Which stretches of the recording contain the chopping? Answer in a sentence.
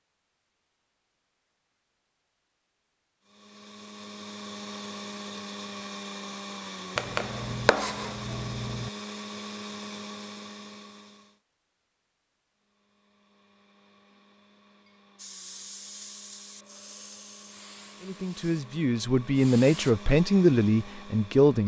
The chopping can be heard from 7.0 to 8.9 s.